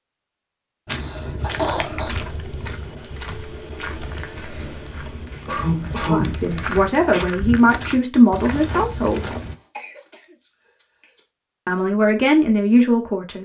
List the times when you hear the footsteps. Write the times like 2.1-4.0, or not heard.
0.8-9.6.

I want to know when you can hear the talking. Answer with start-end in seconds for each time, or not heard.
6.0-9.3, 11.7-13.4.